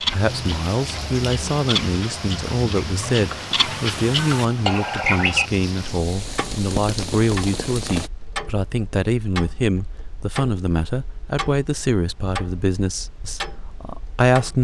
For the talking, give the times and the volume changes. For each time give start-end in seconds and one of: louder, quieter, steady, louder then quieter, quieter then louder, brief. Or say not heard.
0.1-14.5 steady.